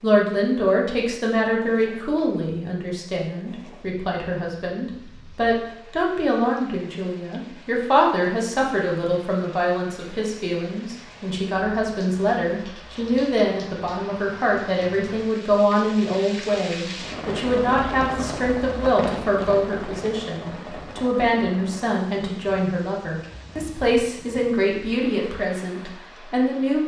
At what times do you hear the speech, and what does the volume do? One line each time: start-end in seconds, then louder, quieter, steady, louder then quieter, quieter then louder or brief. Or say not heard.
0.0-26.8 steady.